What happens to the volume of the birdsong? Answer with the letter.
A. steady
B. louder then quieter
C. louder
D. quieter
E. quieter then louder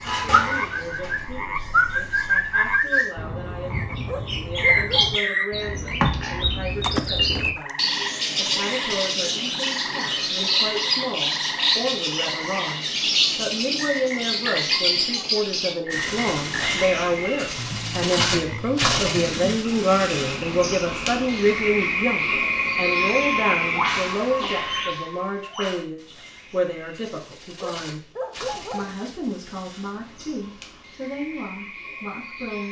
D.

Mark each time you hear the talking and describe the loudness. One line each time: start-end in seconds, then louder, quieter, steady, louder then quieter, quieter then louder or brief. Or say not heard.
0.0-32.6 louder then quieter.